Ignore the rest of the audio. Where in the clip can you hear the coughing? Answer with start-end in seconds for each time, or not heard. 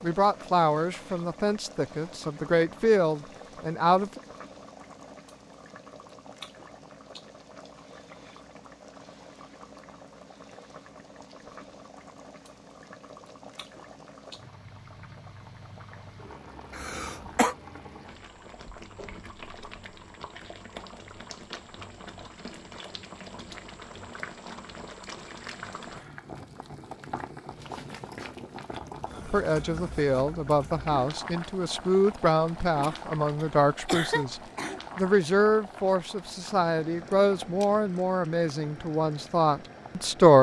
16.7-17.6, 32.8-34.8.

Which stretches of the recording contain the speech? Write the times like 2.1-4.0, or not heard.
0.0-4.2, 29.2-40.3.